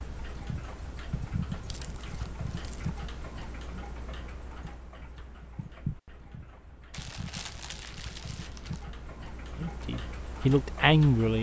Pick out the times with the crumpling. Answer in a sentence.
The crumpling can be heard from 1.6 to 2.9 s and from 6.9 to 8.8 s.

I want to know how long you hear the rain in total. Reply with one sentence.
The rain can't be heard in this clip.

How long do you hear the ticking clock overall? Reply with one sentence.
You can hear the ticking clock for 11 seconds altogether.